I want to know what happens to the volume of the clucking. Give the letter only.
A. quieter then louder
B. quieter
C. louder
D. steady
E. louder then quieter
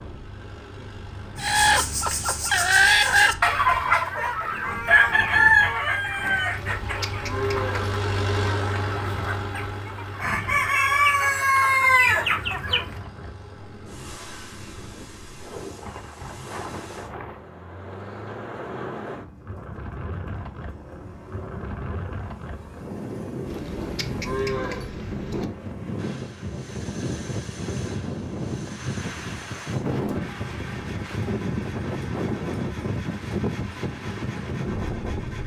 A.